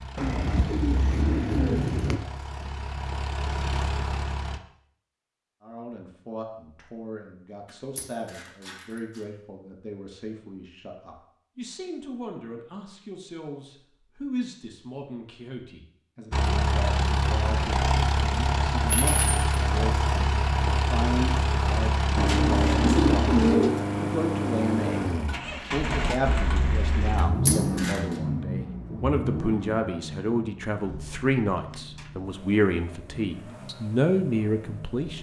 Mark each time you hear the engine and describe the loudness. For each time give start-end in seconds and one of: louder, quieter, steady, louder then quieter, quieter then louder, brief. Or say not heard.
0.0-4.6 louder
16.3-35.1 quieter.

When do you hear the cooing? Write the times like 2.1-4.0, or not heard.
0.1-2.2, 22.1-23.8.